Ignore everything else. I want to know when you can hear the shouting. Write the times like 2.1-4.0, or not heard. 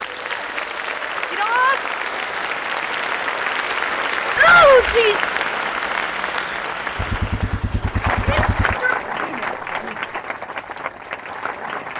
1.3-1.8, 4.3-5.3, 8.2-9.9.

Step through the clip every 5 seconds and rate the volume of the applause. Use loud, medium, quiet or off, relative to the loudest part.
loud, loud, medium.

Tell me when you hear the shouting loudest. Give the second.
5 s.